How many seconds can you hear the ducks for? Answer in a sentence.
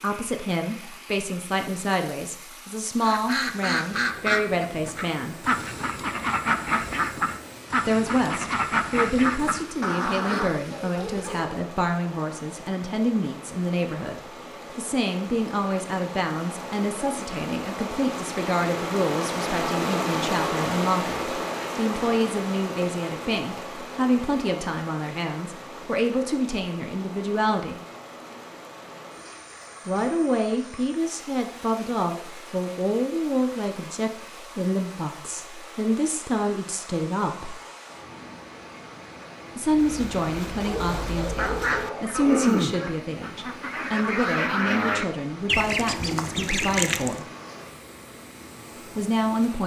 The ducks can be heard for 15 seconds in total.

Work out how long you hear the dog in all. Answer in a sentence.
The dog can be heard for 3 seconds in total.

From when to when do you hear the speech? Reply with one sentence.
You can hear the speech from 0.0 to 5.5 s, from 7.8 to 27.8 s, from 29.9 to 37.5 s, from 39.5 to 47.2 s and from 49.0 to 49.6 s.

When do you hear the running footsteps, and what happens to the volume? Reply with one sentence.
The running footsteps can't be heard in this clip.